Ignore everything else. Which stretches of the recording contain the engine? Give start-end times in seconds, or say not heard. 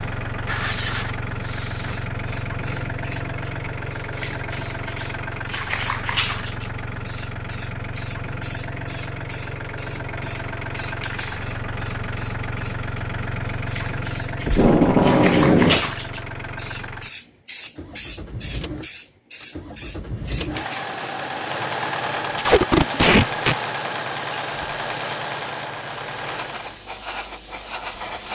0.0-26.9.